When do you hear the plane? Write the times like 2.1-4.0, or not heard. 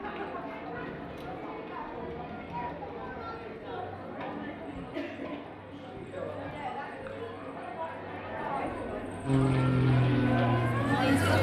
9.2-11.2.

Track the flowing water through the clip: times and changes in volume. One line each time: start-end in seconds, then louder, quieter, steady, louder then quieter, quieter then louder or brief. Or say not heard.
not heard.